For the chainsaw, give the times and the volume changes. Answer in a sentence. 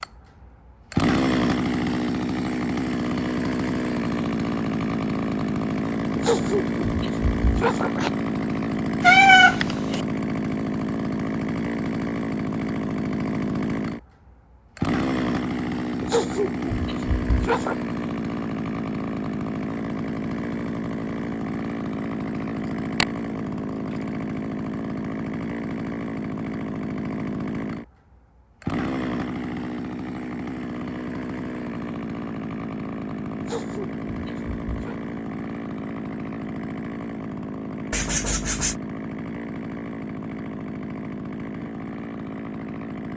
You can hear the chainsaw from 0.0 to 43.1 s, getting quieter.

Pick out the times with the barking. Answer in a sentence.
The barking can be heard from 6.2 to 8.1 s, from 16.0 to 17.8 s and from 33.4 to 35.0 s.